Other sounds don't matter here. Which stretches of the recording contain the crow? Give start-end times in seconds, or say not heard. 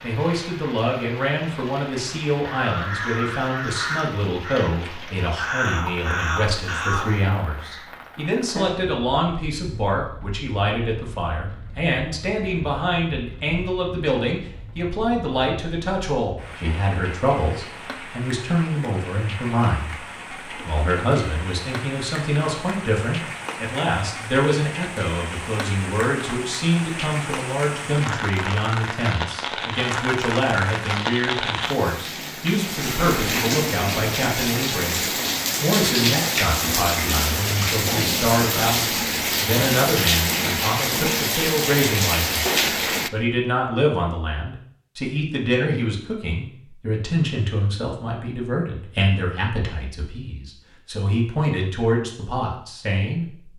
2.4-7.8.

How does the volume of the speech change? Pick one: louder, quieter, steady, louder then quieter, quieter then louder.
steady.